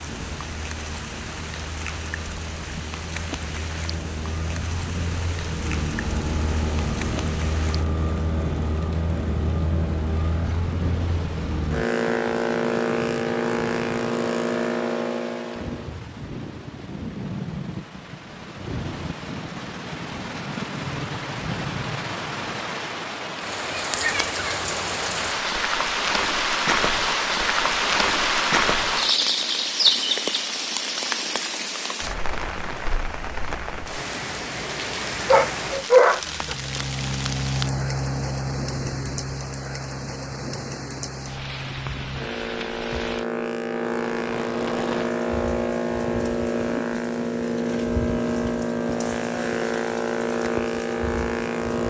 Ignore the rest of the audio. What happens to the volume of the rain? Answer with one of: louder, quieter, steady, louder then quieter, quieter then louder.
louder then quieter.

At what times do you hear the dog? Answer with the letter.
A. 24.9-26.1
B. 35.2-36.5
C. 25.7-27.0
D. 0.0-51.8
B.